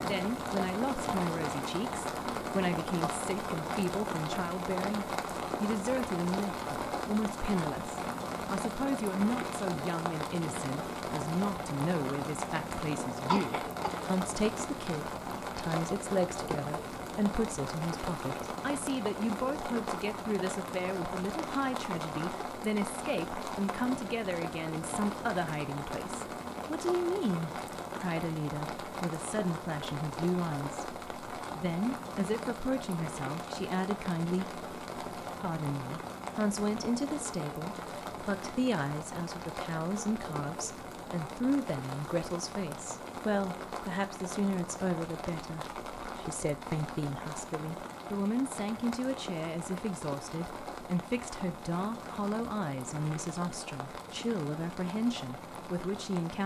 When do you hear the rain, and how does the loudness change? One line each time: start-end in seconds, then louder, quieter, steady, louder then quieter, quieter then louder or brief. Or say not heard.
0.0-56.4 quieter.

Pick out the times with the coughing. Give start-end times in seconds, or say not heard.
13.2-14.5.